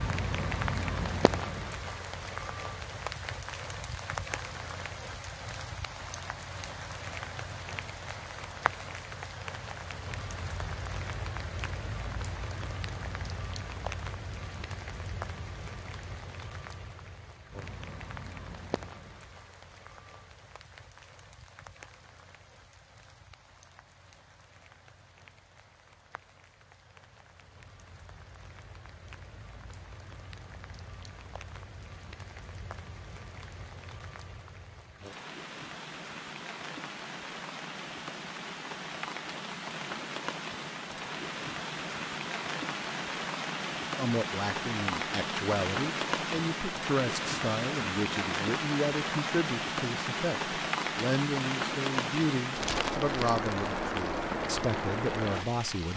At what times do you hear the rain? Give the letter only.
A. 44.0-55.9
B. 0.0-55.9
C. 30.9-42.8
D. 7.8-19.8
B.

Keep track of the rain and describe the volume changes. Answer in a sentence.
The volume of the rain goes down, then up.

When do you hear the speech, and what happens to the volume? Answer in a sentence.
The speech can be heard from 44.0 to 55.9 s, at a steady volume.